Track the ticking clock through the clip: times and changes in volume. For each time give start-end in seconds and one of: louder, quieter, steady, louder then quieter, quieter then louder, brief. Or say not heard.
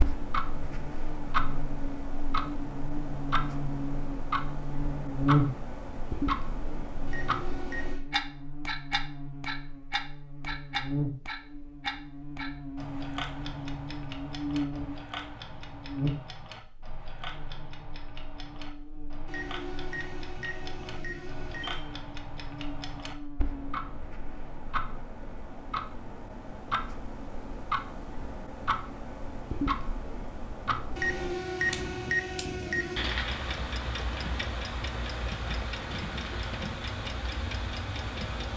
0.0-38.5 quieter then louder.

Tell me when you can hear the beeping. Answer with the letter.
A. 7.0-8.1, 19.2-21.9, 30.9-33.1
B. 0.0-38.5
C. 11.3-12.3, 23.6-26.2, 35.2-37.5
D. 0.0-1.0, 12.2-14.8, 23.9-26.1
A.